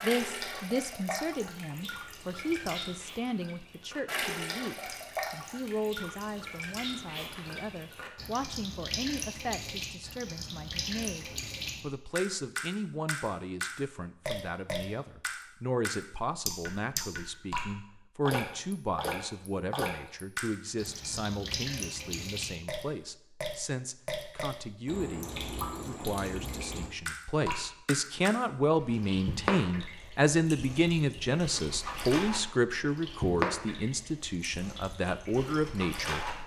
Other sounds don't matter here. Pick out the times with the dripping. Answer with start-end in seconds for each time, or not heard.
0.0-36.4.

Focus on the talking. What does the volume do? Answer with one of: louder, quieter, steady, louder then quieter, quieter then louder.
louder.